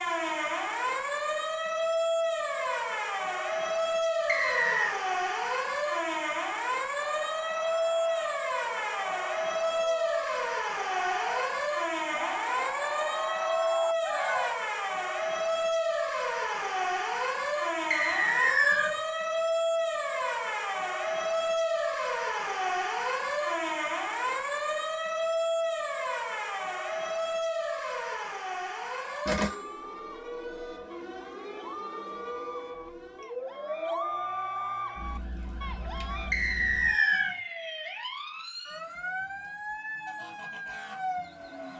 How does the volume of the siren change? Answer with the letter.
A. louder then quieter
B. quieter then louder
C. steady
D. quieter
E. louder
D.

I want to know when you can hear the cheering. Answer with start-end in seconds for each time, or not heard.
7.0-14.6, 29.0-36.4.